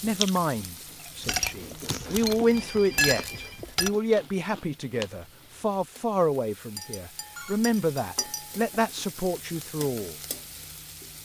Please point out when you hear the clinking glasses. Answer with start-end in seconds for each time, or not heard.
1.2-3.9, 6.8-8.7.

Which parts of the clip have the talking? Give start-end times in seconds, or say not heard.
0.0-10.2.